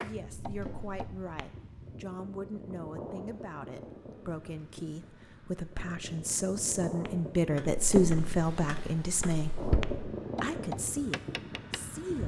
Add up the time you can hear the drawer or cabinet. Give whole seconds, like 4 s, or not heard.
3 s.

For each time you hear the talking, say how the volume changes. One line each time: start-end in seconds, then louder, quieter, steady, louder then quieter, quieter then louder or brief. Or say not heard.
0.0-9.6 louder
10.4-12.2 brief.